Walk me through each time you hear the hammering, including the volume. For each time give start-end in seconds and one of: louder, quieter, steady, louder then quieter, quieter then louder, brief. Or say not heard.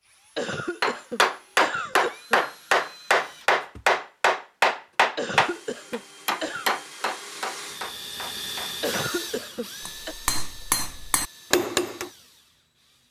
0.8-9.2 quieter
9.8-12.1 brief.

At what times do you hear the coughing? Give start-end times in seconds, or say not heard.
0.3-2.5, 5.2-6.7, 8.8-10.2.